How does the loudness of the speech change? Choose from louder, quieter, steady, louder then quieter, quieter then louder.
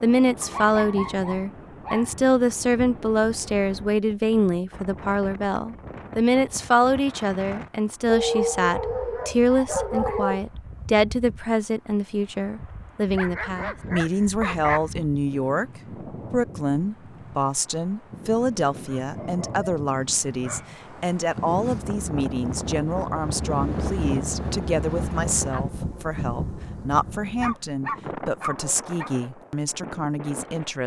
quieter.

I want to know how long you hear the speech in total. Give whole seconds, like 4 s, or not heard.
30 s.